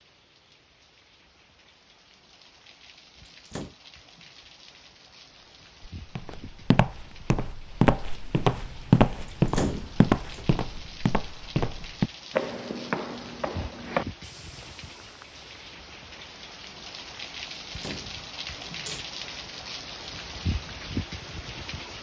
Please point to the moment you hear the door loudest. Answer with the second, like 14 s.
10 s.